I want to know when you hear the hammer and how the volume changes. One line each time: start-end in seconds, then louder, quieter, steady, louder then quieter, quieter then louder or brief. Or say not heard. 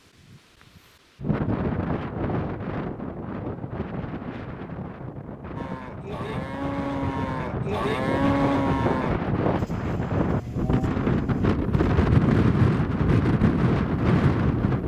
not heard.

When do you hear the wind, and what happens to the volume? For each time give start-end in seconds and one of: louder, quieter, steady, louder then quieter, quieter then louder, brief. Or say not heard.
0.3-14.8 quieter then louder.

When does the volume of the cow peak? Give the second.
8 s.